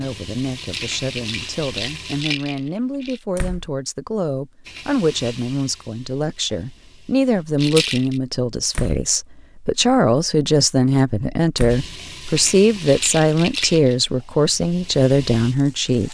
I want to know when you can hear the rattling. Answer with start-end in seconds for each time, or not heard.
0.6-3.2, 7.5-8.2, 12.8-13.9.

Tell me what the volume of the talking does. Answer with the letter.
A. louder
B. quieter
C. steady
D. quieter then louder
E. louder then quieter
A.